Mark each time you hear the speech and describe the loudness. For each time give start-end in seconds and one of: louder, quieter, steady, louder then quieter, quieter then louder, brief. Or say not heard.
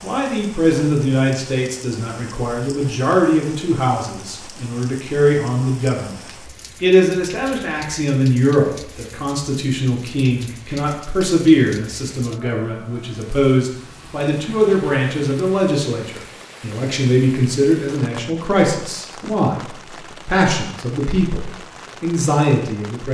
0.0-23.0 steady.